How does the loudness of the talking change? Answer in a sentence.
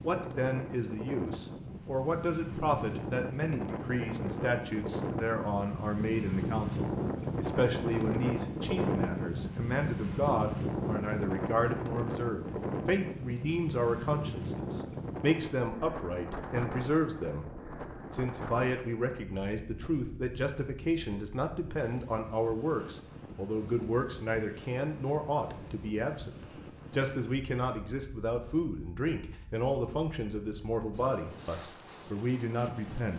The loudness of the talking stays about the same.